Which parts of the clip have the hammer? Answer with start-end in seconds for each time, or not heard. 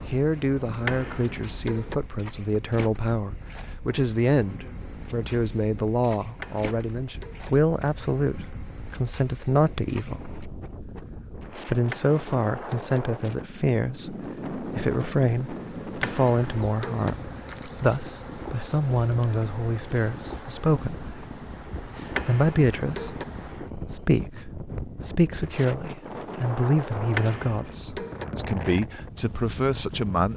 0.8-1.9, 6.4-7.5, 11.9-13.0, 16.0-17.1, 22.1-23.2, 27.1-28.2.